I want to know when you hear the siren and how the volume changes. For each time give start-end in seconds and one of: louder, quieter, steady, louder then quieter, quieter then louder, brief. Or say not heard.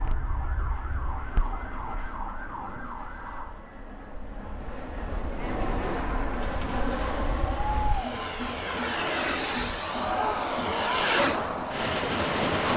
0.0-4.0 steady.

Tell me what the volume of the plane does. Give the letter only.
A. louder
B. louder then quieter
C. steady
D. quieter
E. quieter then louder
A.